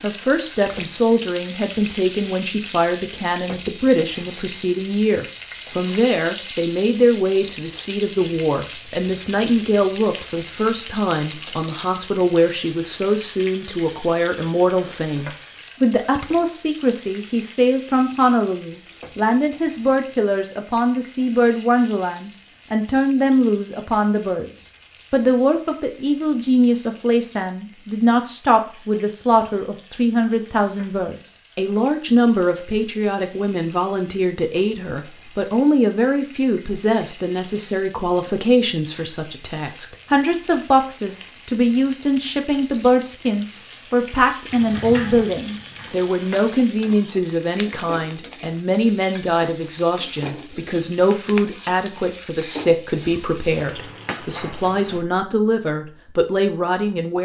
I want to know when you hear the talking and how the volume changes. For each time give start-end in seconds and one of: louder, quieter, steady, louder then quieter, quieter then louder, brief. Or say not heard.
0.0-57.2 steady.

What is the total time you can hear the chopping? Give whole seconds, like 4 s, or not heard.
not heard.